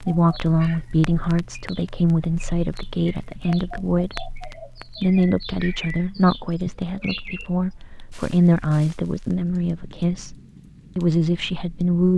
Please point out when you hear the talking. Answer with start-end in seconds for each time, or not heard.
0.0-10.3, 10.9-12.1.